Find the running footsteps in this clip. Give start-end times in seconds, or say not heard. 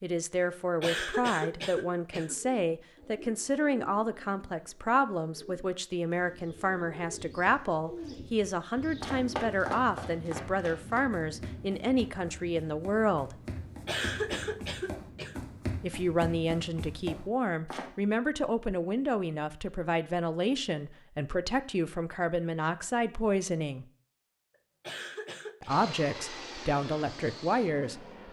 9.0-17.9.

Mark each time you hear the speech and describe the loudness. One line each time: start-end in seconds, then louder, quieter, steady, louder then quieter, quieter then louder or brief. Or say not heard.
0.0-13.3 steady
15.8-23.9 steady
25.6-28.2 brief.